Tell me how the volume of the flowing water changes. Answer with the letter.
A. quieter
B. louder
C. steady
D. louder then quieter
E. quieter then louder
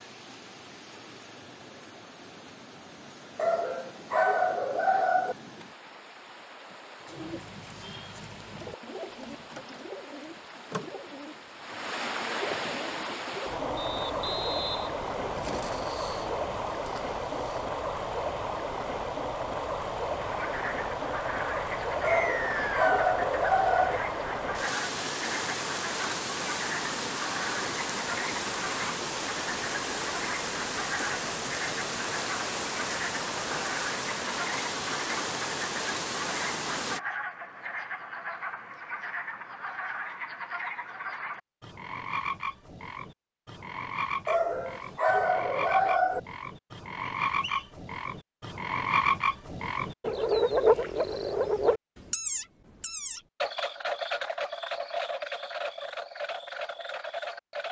B.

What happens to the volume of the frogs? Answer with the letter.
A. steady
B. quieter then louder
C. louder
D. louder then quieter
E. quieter
C.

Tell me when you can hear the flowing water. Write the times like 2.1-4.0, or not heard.
0.0-37.0.